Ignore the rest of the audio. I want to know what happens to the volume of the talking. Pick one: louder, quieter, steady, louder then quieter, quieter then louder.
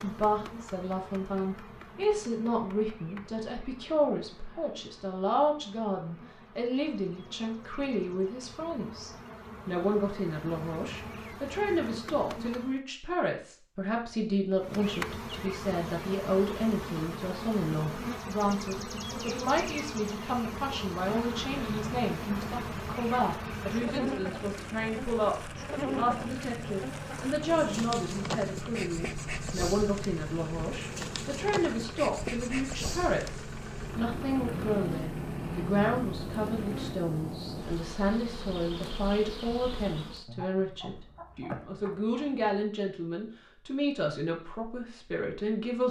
steady.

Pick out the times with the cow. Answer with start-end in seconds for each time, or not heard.
not heard.